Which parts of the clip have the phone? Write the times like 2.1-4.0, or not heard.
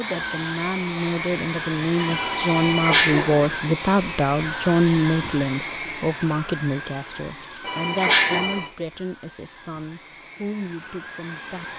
1.9-3.6, 7.6-8.8.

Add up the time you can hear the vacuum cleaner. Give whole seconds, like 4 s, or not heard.
12 s.